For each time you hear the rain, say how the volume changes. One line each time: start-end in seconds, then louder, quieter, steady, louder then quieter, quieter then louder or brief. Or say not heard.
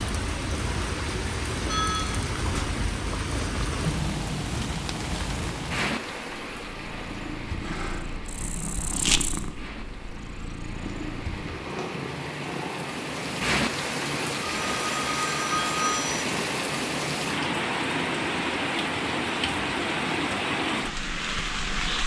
0.0-22.0 quieter then louder.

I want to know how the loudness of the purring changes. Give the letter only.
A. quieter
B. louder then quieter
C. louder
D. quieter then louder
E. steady
A.